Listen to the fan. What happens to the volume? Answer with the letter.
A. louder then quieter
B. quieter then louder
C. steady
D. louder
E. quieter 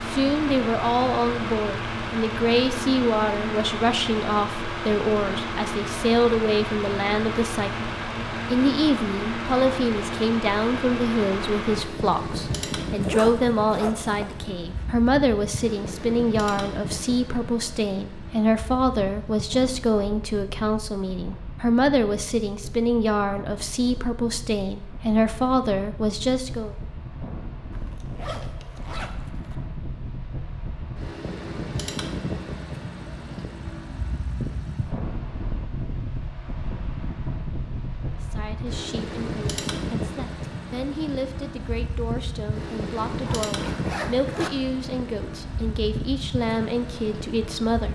B.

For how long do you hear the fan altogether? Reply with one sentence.
You can hear the fan for 48 seconds altogether.